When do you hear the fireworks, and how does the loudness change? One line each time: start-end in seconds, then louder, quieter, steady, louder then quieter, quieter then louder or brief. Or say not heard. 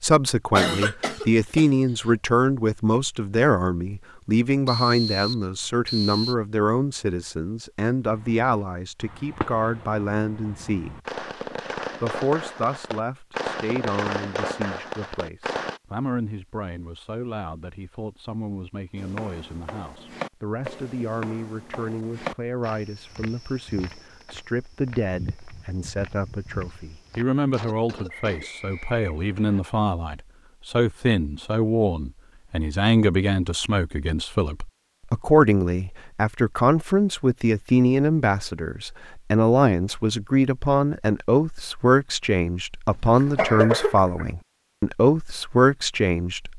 8.1-15.8 louder.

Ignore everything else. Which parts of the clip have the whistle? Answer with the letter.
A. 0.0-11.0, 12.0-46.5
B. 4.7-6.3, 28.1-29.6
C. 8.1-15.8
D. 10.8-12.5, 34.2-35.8
B.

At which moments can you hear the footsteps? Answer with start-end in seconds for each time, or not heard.
18.9-27.2.